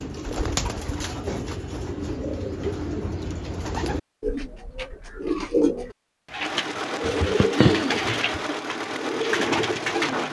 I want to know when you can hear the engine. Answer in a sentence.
The engine can be heard from 6.3 to 10.2 s.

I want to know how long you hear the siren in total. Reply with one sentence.
You can't hear the siren here.